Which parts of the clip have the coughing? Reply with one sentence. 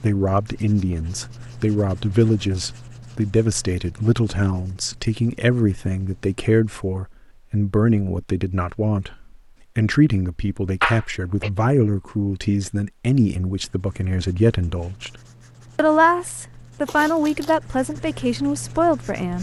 The coughing can be heard from 10.8 to 11.5 s.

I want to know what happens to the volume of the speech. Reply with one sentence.
The loudness of the speech stays about the same.